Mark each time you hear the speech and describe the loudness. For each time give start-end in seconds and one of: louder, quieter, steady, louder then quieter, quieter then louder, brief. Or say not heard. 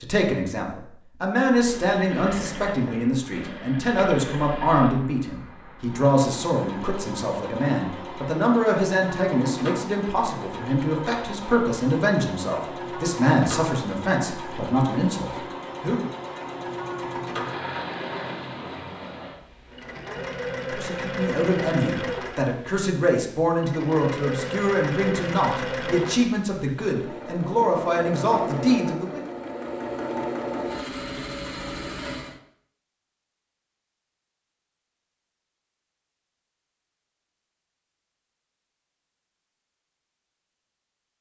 0.0-16.1 steady
20.7-29.2 steady.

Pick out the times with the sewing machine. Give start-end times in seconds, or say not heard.
1.4-32.4.